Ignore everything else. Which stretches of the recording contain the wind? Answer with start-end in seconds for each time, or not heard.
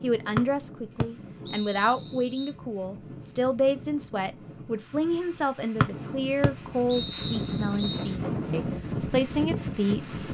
0.0-10.2.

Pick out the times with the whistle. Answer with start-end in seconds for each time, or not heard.
0.3-2.5, 5.8-8.1.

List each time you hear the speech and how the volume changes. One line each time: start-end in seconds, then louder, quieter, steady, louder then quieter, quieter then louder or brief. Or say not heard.
0.0-10.2 steady.